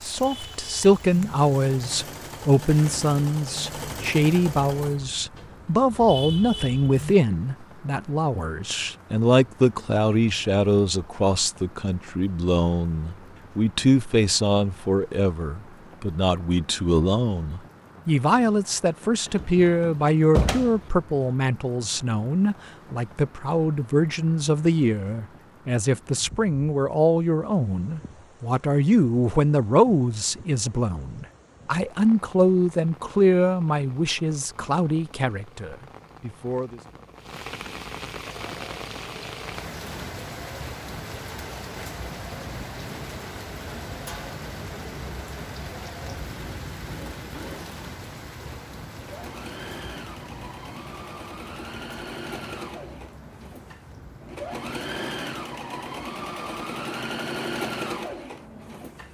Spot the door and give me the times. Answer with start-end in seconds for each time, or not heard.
19.2-20.8.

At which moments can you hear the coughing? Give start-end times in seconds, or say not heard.
not heard.